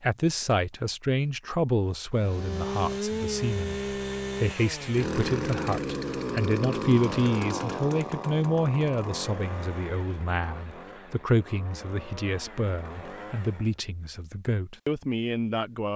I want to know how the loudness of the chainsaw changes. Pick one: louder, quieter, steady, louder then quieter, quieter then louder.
quieter.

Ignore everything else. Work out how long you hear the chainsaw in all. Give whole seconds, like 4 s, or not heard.
12 s.